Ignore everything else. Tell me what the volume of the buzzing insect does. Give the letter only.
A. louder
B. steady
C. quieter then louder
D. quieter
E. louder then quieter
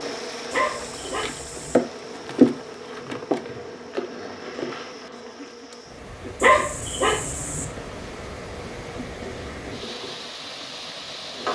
D.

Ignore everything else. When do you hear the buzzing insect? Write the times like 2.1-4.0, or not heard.
0.0-11.5.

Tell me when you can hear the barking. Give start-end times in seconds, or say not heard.
0.5-1.8, 6.4-7.7.